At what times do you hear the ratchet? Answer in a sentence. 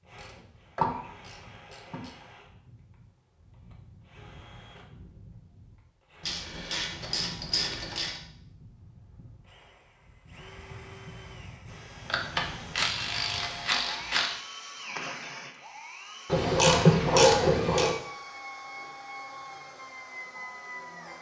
The ratchet can be heard from 0.1 to 2.1 s, from 6.2 to 8.2 s, from 12.1 to 14.4 s and from 16.3 to 17.9 s.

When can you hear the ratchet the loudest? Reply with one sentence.
The volume of the ratchet peaks at 17 seconds.